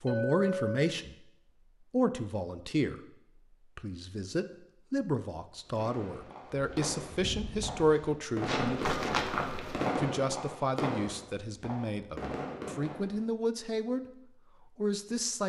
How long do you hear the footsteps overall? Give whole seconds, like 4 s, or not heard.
3 s.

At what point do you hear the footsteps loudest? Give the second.
9 s.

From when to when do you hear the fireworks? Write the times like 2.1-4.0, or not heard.
5.7-13.2.